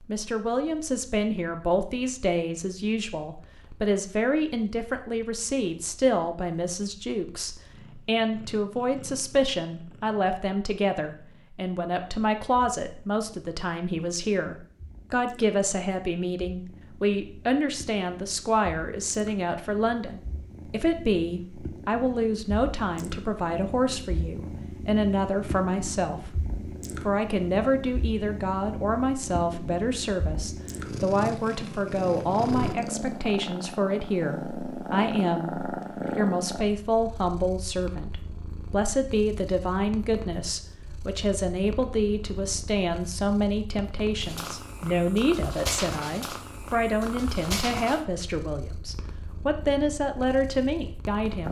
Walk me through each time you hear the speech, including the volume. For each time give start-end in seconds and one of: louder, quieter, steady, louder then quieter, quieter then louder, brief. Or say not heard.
0.1-51.4 steady.